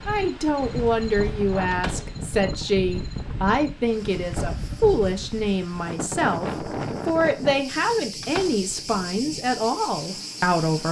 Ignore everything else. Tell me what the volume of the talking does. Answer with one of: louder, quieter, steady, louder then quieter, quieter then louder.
steady.